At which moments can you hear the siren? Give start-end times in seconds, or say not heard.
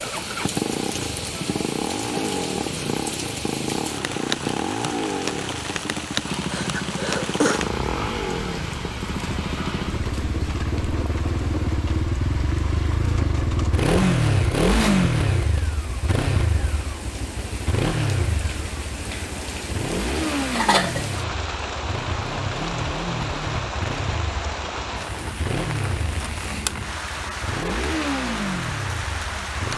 not heard.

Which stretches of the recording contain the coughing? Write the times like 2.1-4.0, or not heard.
6.5-7.6, 20.5-21.1.